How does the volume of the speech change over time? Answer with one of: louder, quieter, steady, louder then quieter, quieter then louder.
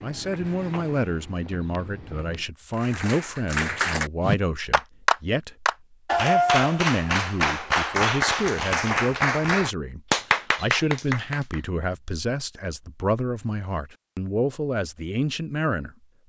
steady.